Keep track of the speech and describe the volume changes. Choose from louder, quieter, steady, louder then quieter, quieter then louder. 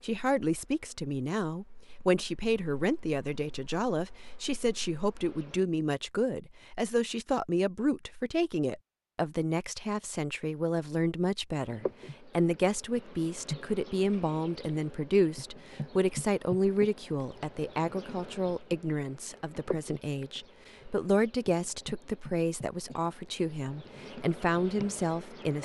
steady.